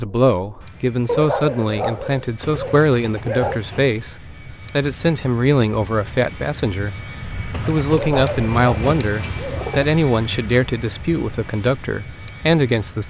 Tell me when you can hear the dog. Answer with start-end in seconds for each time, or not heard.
1.1-3.6, 7.9-9.7.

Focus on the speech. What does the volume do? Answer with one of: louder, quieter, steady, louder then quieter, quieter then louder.
steady.